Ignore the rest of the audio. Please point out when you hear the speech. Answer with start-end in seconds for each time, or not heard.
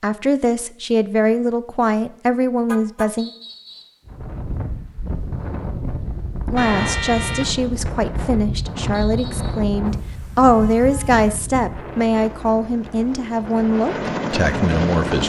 0.0-3.3, 6.5-15.2.